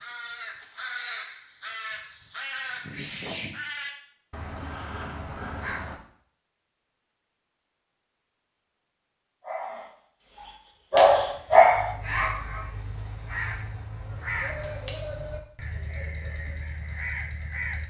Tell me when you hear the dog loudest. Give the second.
12 s.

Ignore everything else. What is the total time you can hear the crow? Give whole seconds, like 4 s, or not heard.
13 s.